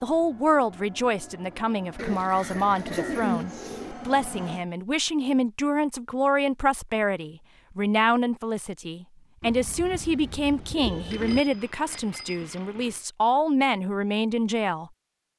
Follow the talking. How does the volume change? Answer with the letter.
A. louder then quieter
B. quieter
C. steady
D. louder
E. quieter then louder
C.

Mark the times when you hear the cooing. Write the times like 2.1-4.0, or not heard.
1.9-4.0, 9.4-11.4.